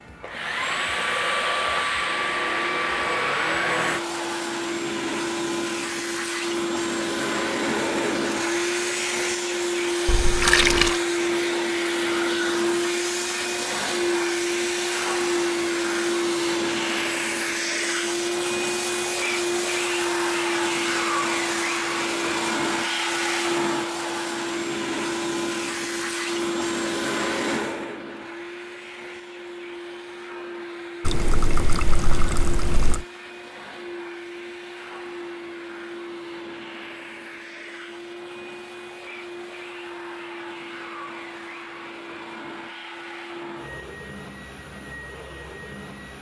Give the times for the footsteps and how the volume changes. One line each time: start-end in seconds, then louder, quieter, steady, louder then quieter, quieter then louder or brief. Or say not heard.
not heard.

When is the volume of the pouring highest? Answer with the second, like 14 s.
11 s.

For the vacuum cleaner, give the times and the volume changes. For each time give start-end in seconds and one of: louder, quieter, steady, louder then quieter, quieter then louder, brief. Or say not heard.
0.0-46.1 quieter.